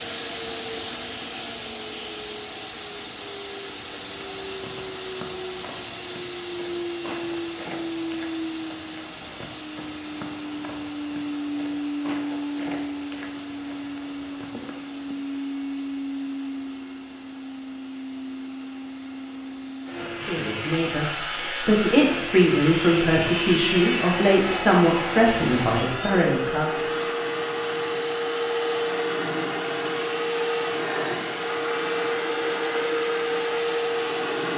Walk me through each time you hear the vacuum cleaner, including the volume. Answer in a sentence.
You can hear the vacuum cleaner from 0.0 to 34.5 s, getting louder.